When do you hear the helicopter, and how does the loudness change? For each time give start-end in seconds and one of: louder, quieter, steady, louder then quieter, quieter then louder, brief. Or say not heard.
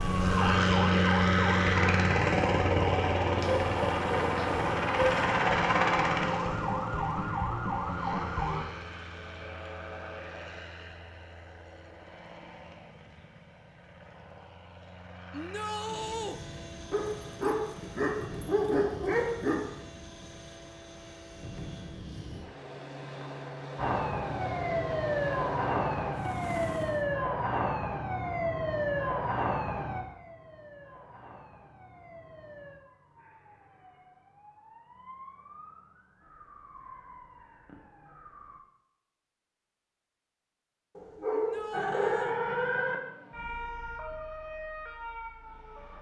0.0-27.1 quieter then louder.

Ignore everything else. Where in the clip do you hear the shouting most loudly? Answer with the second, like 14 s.
16 s.